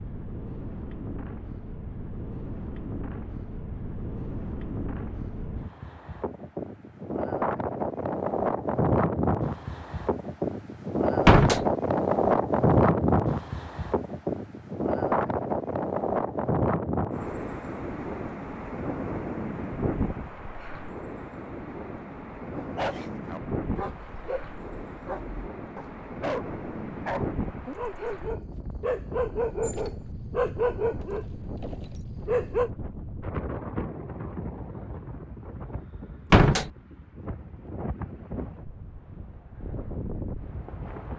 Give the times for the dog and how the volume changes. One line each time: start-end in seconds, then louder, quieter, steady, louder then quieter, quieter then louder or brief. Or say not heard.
22.8-32.7 louder.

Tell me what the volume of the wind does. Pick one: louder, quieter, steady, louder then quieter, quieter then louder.
louder then quieter.